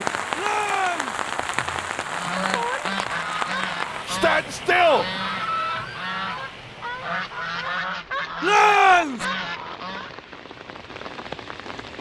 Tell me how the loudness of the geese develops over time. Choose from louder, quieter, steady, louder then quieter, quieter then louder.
steady.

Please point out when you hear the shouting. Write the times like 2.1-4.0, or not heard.
0.3-1.2, 4.0-5.0, 8.4-9.2.